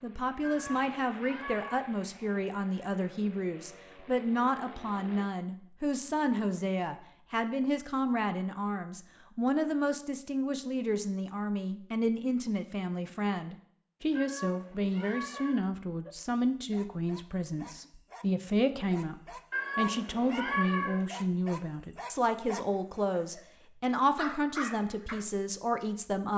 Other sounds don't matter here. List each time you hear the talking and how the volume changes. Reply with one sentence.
You can hear the talking from 0.0 to 26.3 s, at a steady volume.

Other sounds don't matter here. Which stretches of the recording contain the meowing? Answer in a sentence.
You can hear the meowing from 0.4 to 1.9 s, from 14.2 to 15.7 s and from 19.5 to 21.1 s.